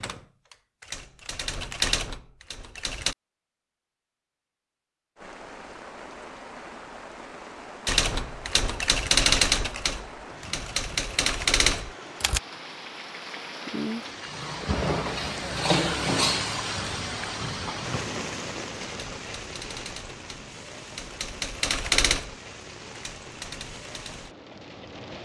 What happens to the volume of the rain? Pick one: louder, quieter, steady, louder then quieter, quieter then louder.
louder then quieter.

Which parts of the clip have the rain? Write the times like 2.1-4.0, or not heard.
5.2-25.2.